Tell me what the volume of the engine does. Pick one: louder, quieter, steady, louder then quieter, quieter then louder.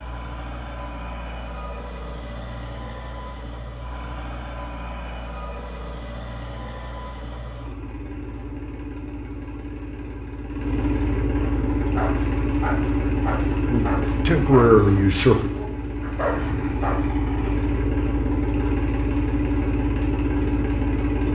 louder.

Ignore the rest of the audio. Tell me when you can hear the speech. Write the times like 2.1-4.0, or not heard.
13.7-15.5.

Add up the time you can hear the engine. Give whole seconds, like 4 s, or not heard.
21 s.